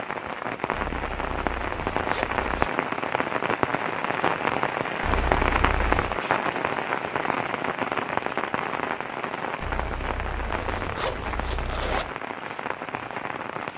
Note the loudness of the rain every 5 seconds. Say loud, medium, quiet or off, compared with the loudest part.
loud, loud, medium.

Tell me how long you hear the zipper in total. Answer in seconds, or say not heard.
6 s.